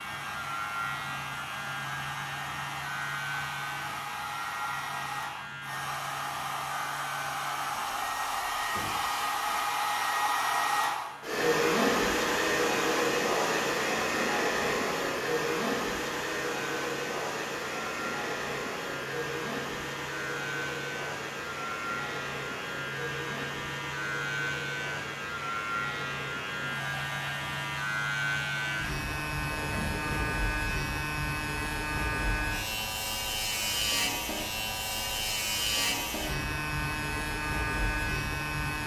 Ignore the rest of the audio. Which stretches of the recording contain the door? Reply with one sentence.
You can hear the door from 8.7 to 9.2 s and from 29.4 to 30.4 s.